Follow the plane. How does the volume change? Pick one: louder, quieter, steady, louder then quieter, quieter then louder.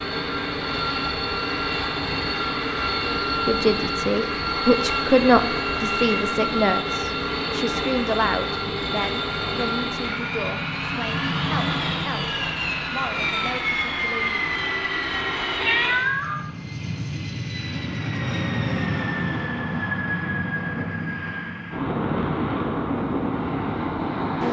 steady.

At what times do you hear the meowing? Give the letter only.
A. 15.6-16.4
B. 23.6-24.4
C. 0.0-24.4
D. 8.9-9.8
A.